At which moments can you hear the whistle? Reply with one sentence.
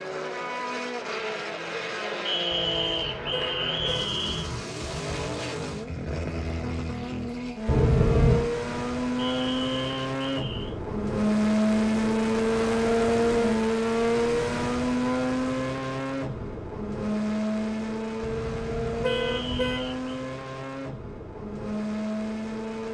You can hear the whistle from 2.2 to 4.5 s, from 9.2 to 10.8 s and from 19.1 to 20.1 s.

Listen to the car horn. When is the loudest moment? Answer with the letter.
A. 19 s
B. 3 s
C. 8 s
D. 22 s
C.